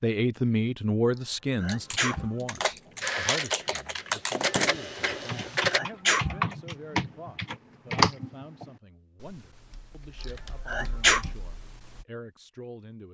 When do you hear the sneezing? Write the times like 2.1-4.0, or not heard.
1.6-2.3, 5.7-6.4, 10.2-11.3.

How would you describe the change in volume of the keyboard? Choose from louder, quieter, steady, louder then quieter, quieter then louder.
louder then quieter.